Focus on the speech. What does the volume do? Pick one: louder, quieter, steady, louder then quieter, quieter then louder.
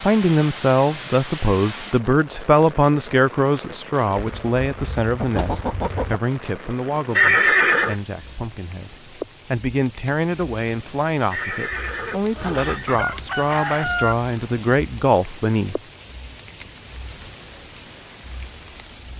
quieter then louder.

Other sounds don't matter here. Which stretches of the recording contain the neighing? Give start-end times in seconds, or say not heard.
7.2-8.0, 11.3-12.9.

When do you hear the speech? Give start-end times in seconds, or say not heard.
0.0-15.8.